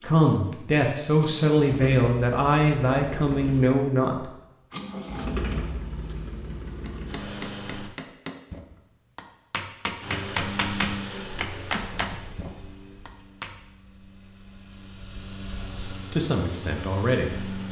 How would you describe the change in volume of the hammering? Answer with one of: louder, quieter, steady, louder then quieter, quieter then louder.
louder then quieter.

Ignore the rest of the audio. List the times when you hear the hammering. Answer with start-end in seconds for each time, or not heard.
6.8-13.6.